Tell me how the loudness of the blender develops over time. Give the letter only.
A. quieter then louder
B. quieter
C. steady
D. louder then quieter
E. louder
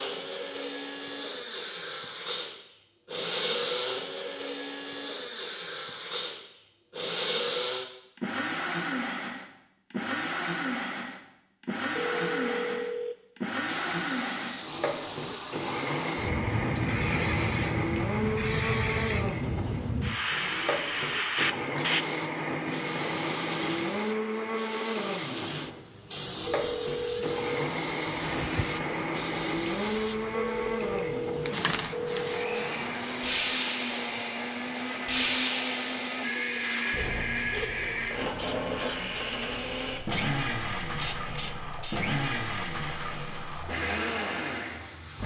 C.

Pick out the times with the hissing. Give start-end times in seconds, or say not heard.
13.7-45.2.